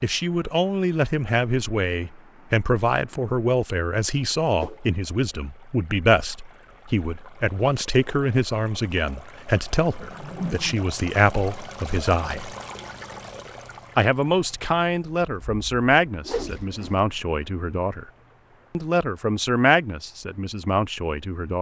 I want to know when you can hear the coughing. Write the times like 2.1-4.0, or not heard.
not heard.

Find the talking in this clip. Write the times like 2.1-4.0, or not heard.
0.0-12.6, 13.9-18.1, 18.7-21.5.